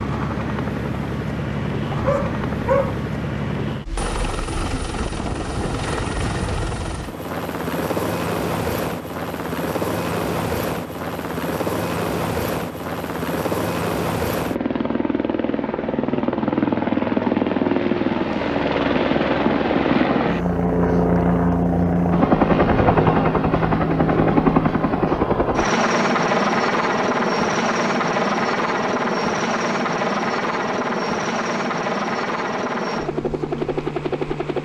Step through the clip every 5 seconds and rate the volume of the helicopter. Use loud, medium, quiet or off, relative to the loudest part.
medium, medium, medium, loud, loud, loud, medium.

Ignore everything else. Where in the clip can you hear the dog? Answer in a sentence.
You can hear the dog from 1.9 to 3.0 s.